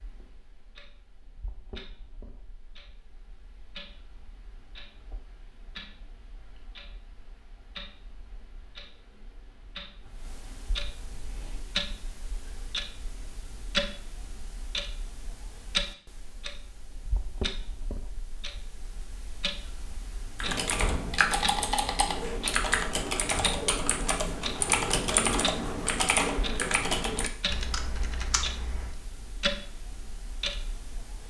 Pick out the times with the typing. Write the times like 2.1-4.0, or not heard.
20.4-28.9.